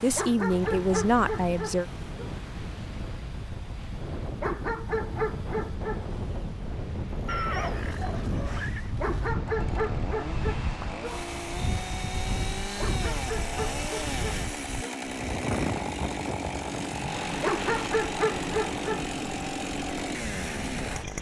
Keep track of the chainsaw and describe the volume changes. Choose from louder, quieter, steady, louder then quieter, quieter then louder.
louder.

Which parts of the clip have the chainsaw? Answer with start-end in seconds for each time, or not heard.
0.0-21.1.